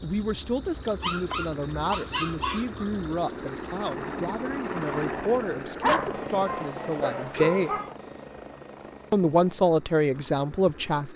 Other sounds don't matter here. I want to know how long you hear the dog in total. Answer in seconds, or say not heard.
4 s.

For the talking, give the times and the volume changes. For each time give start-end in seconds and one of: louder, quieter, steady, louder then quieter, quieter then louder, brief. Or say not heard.
0.0-7.7 steady
9.1-11.1 brief.